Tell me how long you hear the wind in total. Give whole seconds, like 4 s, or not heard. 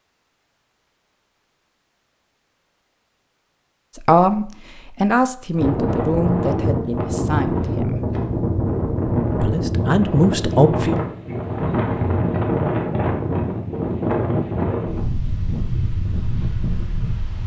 12 s.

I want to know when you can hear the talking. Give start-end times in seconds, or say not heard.
4.0-8.0, 9.4-10.9.